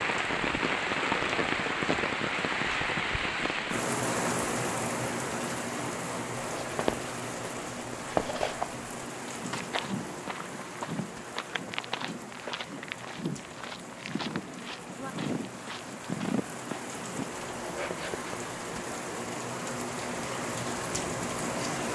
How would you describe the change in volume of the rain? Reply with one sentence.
The loudness of the rain goes down, then up.